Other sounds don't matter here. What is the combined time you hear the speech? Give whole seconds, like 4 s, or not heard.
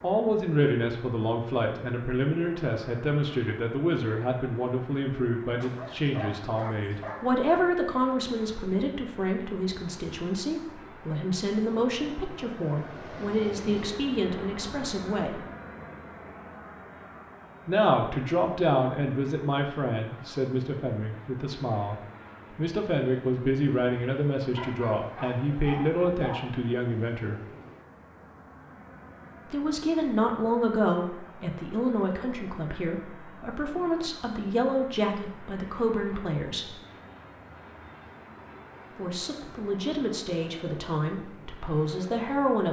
36 s.